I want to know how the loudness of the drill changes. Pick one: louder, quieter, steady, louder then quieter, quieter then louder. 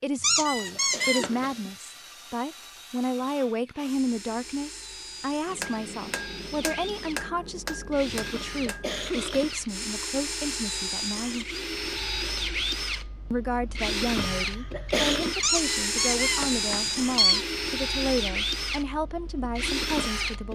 louder.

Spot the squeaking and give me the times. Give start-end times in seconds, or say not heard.
0.2-1.4, 15.4-17.4.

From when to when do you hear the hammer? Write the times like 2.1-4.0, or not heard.
5.5-9.1.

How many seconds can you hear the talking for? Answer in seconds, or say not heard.
19 s.